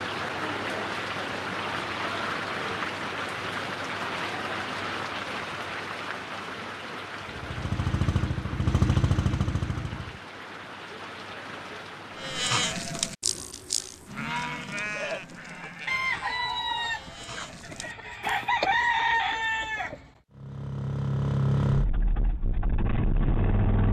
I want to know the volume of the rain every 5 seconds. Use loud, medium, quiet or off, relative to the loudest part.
loud, medium, medium, off, off.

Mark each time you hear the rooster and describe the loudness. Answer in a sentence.
You can hear the rooster from 15.8 to 20.1 s, getting quieter then louder.